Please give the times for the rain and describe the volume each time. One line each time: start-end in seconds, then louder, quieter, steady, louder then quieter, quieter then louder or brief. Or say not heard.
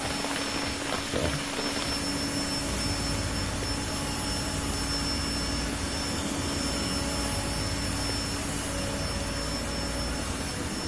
0.0-10.8 steady.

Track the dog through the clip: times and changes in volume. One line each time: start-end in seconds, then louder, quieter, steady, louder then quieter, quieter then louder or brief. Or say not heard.
not heard.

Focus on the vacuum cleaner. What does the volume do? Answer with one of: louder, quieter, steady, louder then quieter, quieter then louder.
steady.